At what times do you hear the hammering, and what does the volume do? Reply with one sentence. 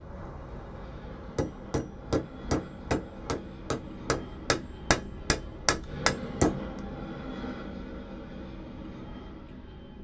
The hammering can be heard from 0.0 to 6.7 s, getting louder.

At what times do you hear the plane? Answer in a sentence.
The plane can be heard from 0.0 to 9.9 s.